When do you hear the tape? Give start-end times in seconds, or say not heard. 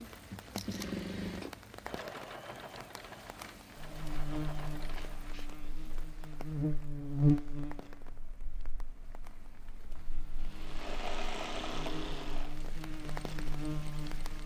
0.5-0.9.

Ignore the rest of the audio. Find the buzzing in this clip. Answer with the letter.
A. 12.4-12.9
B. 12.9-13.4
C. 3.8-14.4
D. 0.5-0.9
C.